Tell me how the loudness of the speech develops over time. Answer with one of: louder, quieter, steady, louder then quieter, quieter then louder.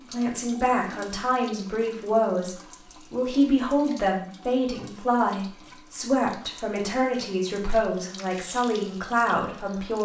steady.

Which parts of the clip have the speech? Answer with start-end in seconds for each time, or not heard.
0.0-9.9.